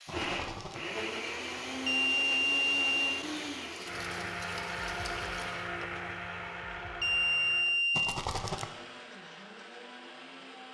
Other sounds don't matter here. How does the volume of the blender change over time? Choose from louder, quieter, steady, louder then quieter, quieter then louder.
quieter.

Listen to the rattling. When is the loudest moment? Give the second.
8 s.